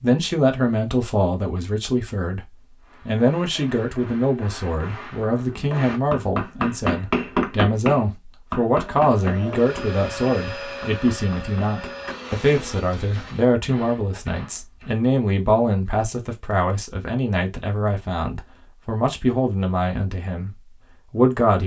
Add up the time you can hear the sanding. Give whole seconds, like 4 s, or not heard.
not heard.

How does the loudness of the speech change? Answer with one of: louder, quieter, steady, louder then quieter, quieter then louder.
steady.